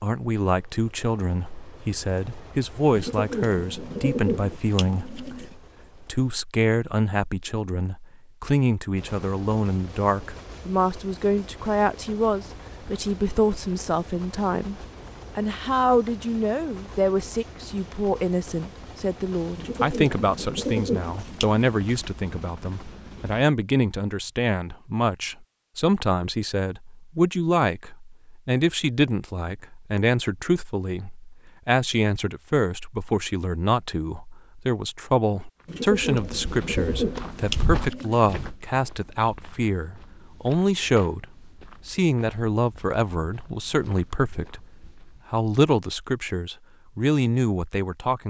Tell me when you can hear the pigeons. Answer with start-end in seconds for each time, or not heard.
3.0-5.5, 19.6-21.6, 35.6-38.5.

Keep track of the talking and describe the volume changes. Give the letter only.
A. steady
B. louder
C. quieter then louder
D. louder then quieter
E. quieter
A.